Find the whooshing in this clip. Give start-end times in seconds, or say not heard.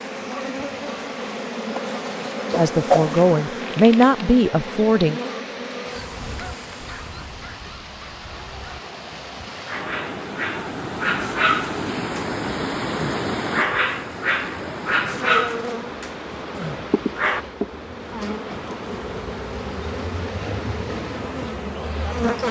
2.5-3.1.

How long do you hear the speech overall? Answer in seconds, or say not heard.
3 s.